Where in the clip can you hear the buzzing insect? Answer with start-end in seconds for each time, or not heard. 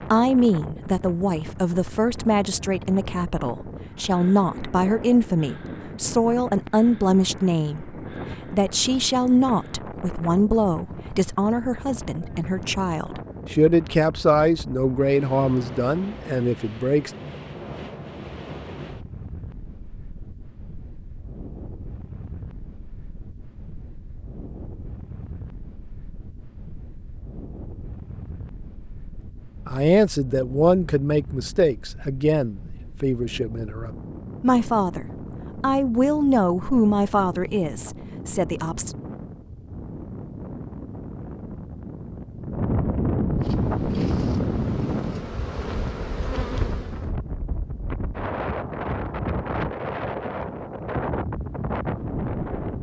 43.3-47.1.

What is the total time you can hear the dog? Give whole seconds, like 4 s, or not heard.
not heard.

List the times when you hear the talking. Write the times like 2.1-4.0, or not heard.
0.1-17.1, 29.6-39.0.